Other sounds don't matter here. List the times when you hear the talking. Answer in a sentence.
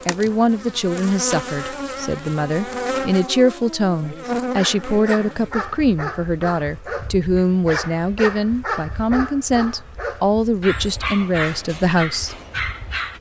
You can hear the talking from 0.1 to 12.3 s.